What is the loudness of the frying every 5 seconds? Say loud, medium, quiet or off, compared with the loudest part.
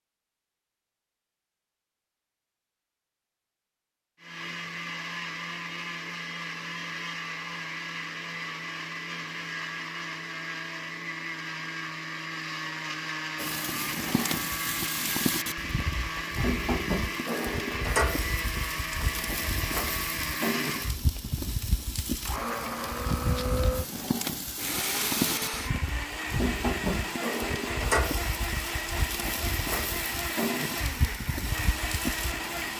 off, off, loud, loud, loud, loud, loud.